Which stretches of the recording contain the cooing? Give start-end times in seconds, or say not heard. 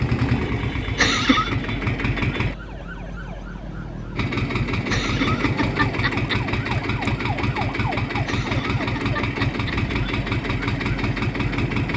not heard.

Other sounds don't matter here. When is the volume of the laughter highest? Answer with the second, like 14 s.
1 s.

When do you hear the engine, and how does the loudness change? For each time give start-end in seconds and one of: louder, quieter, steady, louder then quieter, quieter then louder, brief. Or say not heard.
0.0-2.5 brief
4.2-11.9 steady.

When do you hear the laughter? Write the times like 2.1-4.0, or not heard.
0.9-1.6, 4.8-6.4, 8.2-9.8.